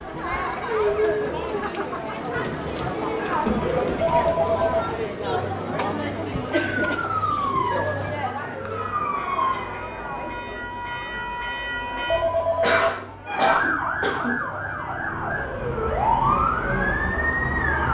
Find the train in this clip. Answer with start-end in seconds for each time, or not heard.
8.7-12.2.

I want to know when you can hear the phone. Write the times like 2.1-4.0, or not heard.
4.0-4.8, 12.1-12.9.